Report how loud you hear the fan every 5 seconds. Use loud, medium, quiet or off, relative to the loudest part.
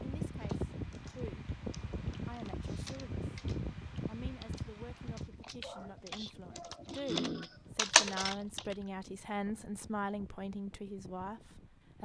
loud, quiet, quiet.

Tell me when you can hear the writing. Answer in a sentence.
You can't hear the writing here.